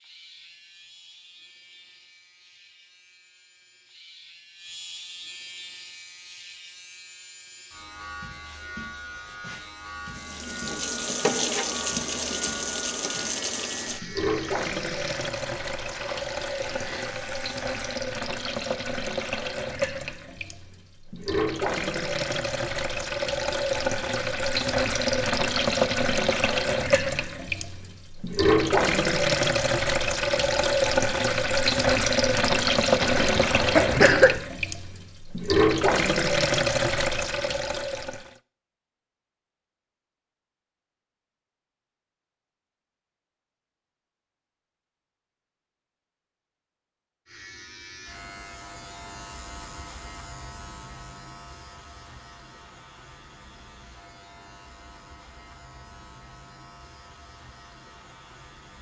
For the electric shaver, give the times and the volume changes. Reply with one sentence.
The electric shaver can be heard from 0.0 to 17.9 s, getting louder; and from 47.2 to 58.7 s, getting quieter.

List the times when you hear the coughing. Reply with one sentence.
You can hear the coughing from 33.0 to 34.4 s.